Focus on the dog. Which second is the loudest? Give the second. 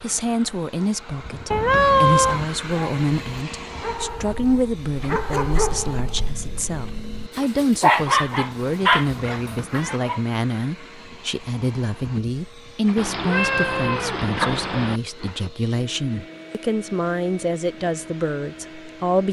8 s.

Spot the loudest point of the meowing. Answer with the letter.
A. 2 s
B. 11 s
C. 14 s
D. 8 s
A.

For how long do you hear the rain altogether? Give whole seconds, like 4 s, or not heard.
not heard.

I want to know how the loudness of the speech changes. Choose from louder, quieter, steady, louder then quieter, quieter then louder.
steady.